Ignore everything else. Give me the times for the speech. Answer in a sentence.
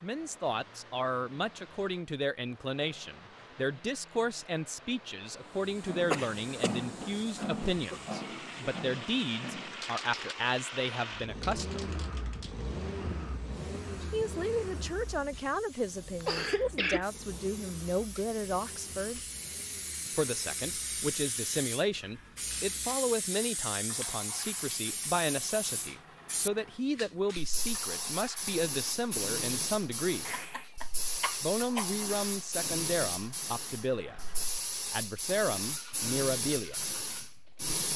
The speech can be heard from 0.0 to 11.9 s, from 14.1 to 19.2 s, from 20.1 to 30.2 s and from 31.4 to 36.9 s.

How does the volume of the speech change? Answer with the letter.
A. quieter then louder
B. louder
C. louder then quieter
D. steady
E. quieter
D.